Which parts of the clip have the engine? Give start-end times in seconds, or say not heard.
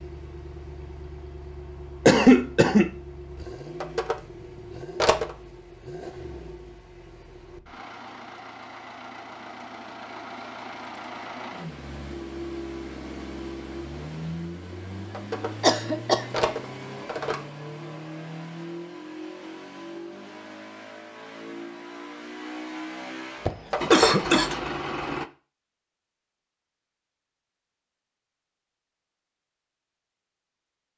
0.0-25.3.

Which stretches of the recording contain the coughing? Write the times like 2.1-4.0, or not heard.
2.0-2.9, 15.6-16.2, 23.4-24.5.